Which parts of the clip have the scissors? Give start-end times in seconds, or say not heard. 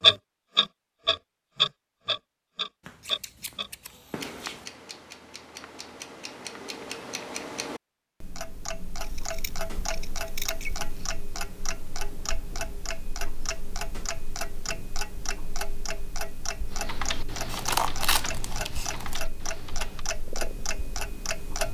2.8-4.7, 9.0-11.1, 17.4-19.2.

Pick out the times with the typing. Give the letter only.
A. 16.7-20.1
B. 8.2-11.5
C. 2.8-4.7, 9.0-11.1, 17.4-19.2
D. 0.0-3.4
A.